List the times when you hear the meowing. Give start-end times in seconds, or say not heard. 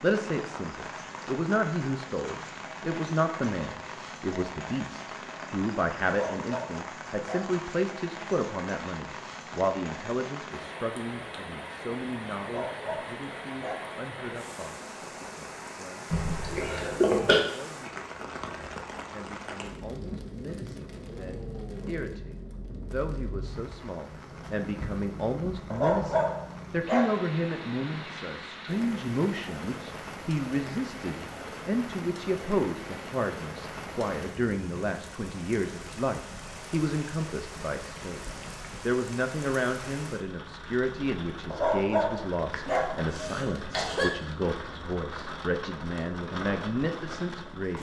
not heard.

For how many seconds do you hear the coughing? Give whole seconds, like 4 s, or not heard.
3 s.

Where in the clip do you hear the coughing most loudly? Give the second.
17 s.